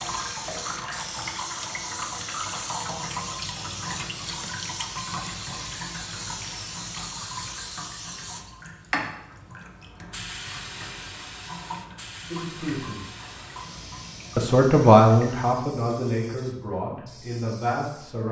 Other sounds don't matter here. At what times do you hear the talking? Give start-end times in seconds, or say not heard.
12.3-13.2, 14.3-18.2.